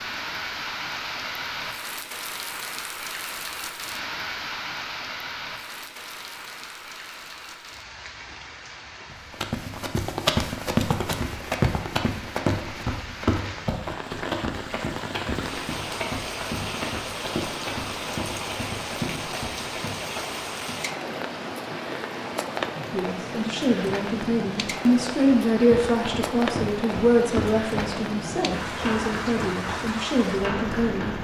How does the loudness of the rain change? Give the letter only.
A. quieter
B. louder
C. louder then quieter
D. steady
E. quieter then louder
E.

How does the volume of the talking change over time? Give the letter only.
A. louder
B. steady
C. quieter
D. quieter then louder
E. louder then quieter
E.